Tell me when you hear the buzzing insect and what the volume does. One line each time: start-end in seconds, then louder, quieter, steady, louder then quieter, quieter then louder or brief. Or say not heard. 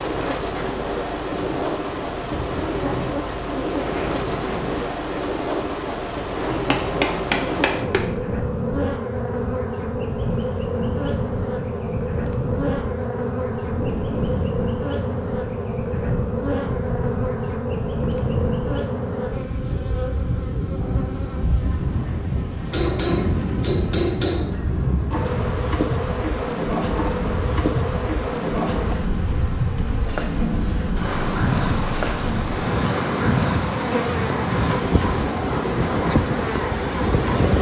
0.0-37.5 steady.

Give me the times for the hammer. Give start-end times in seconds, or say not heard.
6.5-8.1, 22.7-24.5.